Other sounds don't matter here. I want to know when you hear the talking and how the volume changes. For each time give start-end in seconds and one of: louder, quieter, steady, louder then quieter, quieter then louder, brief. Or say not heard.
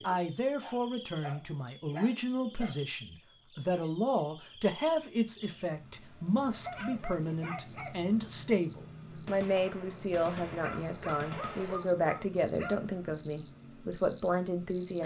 0.0-15.0 steady.